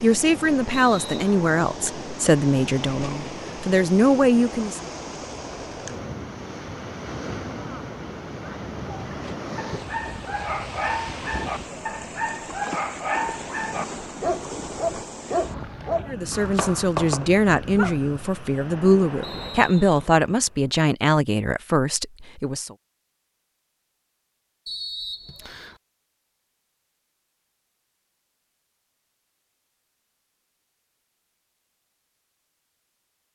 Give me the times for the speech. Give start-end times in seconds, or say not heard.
0.0-4.9, 16.1-22.8.